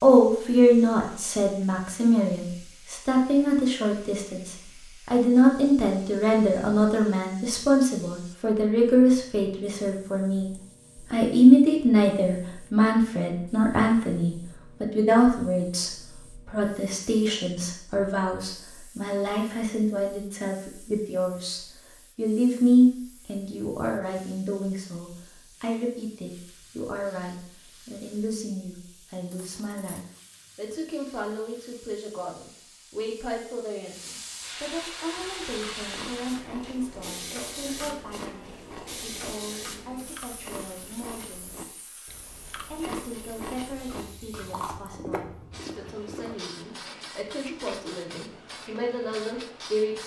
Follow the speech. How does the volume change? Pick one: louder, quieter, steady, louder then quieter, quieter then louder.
quieter.